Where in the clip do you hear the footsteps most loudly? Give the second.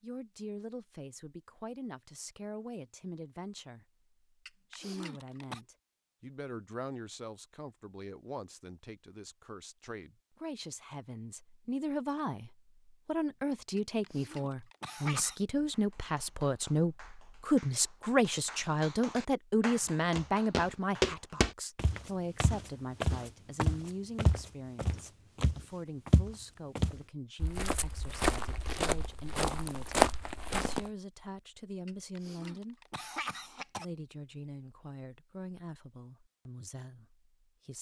30 s.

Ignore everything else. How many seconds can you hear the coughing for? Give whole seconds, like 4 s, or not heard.
5 s.